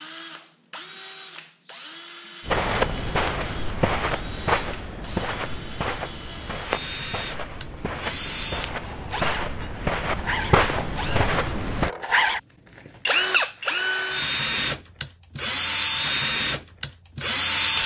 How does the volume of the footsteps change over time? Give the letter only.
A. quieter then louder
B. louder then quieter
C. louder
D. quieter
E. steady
A.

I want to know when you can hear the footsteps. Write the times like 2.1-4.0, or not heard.
2.5-11.9.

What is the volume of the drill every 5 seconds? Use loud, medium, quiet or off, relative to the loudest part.
medium, medium, loud, loud.